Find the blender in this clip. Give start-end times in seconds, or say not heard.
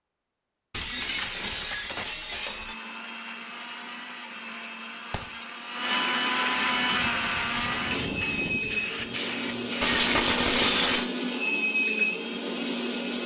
2.4-13.2.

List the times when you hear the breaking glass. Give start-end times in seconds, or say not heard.
0.7-2.8, 5.1-5.8, 9.8-11.1.